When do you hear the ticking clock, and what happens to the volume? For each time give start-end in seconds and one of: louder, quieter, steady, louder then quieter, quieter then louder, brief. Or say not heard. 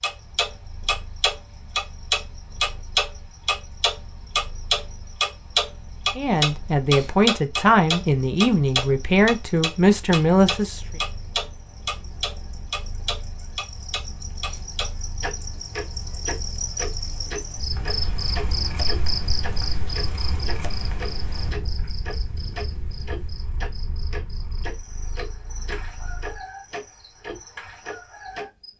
0.0-28.4 quieter.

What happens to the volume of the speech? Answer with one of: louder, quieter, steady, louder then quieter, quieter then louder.
steady.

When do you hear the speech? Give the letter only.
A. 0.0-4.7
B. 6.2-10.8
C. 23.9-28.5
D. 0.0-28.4
B.